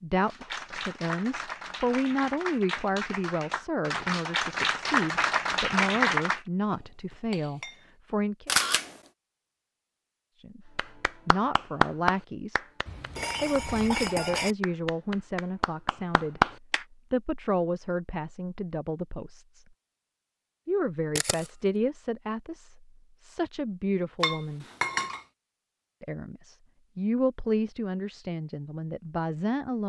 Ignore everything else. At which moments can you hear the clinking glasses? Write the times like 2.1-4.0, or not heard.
6.7-7.8, 12.8-14.6, 24.2-25.2.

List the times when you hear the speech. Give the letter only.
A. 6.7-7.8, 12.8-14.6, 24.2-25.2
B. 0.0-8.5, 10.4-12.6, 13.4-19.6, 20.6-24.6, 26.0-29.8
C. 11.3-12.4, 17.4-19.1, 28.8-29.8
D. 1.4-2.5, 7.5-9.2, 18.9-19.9
B.